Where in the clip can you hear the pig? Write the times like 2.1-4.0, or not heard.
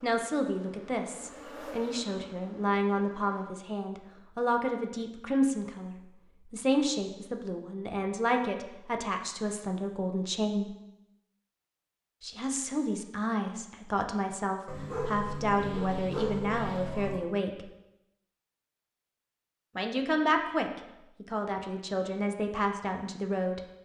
not heard.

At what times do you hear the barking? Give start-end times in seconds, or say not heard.
14.7-17.2.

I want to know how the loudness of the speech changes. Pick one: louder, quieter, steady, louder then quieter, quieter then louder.
steady.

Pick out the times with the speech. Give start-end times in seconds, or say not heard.
0.0-10.7, 12.2-17.6, 19.8-23.6.